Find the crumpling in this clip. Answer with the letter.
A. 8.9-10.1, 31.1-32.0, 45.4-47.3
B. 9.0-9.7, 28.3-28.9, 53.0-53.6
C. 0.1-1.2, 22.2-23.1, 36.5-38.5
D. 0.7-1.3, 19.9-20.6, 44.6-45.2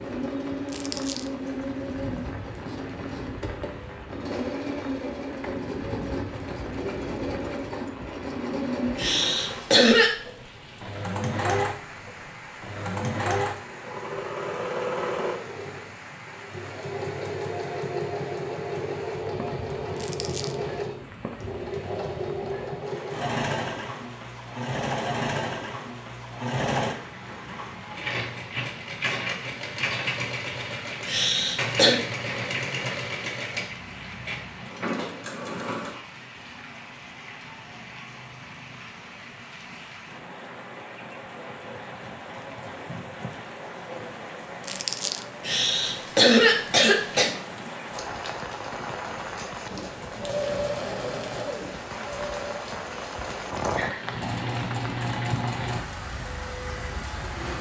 D.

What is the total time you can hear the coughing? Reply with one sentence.
You can hear the coughing for 4 seconds altogether.